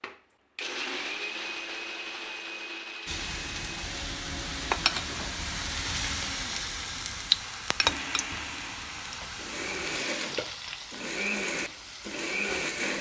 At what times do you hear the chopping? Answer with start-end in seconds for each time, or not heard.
not heard.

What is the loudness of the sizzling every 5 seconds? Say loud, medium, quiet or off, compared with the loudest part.
loud, loud, medium.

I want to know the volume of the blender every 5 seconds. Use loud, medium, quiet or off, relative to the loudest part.
medium, medium, loud.